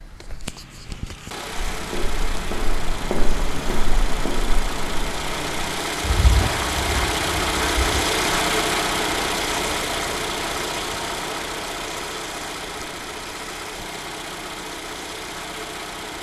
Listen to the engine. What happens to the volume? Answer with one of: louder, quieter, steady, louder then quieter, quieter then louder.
louder then quieter.